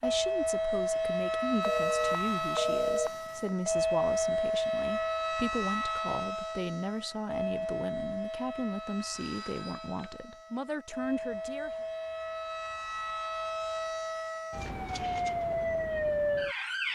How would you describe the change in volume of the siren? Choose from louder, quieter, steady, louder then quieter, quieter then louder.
quieter then louder.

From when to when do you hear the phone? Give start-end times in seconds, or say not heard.
1.6-3.5, 9.1-10.3.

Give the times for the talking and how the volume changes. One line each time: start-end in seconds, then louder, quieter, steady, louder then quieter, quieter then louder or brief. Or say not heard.
0.0-11.8 steady.